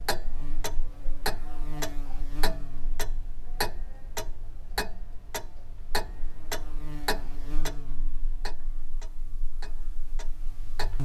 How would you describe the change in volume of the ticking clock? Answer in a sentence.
The loudness of the ticking clock goes down.